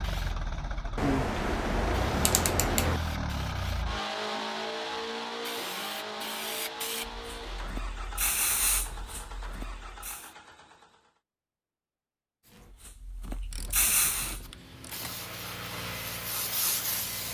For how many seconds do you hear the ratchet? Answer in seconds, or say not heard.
4 s.